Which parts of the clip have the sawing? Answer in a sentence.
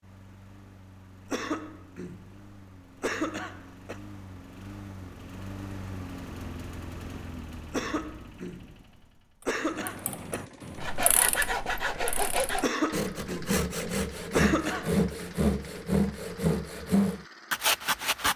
You can hear the sawing from 10.8 to 18.3 s.